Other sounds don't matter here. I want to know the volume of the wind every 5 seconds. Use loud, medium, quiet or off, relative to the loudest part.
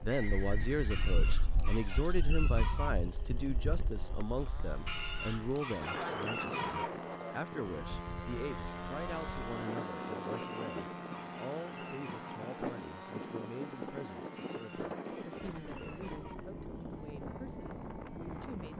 medium, loud, loud, loud.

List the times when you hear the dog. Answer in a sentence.
The dog can be heard from 0.9 to 2.9 s, from 4.8 to 6.9 s, from 10.3 to 12.4 s and from 14.3 to 16.4 s.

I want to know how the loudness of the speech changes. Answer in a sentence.
The loudness of the speech goes down.